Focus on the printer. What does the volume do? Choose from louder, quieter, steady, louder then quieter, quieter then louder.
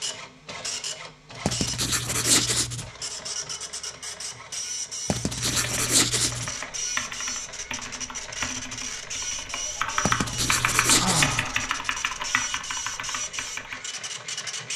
steady.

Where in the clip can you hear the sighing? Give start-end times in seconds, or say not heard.
10.9-11.8.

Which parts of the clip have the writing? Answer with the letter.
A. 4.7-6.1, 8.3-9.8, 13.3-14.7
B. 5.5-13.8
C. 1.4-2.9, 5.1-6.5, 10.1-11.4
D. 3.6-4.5
C.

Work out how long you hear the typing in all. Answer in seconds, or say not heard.
8 s.